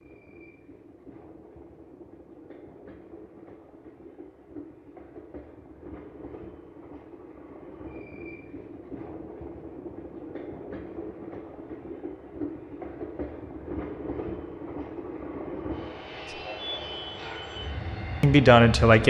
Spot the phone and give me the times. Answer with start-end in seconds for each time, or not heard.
not heard.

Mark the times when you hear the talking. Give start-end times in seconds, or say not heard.
18.2-19.0.